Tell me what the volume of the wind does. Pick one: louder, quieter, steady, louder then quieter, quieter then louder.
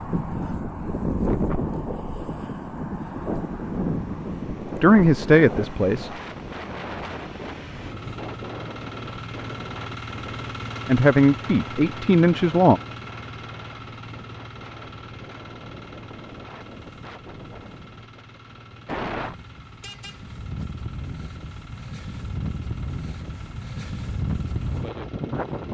quieter then louder.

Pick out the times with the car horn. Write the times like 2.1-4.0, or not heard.
19.8-20.7.